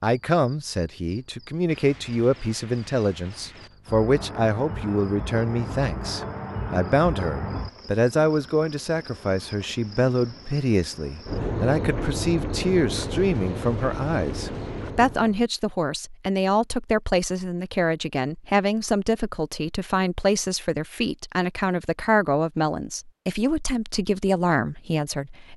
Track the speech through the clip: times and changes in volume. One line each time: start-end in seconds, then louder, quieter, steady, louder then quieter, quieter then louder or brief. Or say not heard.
0.0-25.5 steady.